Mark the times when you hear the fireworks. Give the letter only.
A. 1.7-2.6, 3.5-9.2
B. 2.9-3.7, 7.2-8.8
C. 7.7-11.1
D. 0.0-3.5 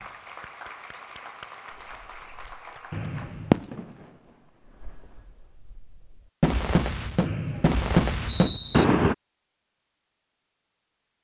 A.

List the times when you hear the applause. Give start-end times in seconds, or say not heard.
0.0-3.5.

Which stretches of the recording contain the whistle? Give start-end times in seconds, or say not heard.
2.9-3.7, 7.2-8.8.